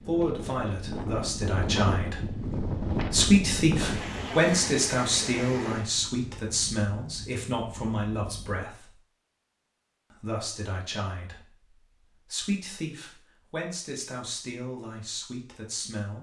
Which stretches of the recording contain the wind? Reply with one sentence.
You can hear the wind from 0.0 to 8.7 s.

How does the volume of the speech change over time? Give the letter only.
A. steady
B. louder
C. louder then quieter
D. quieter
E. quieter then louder
D.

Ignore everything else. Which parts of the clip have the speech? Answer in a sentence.
The speech can be heard from 0.0 to 8.9 s and from 10.1 to 16.1 s.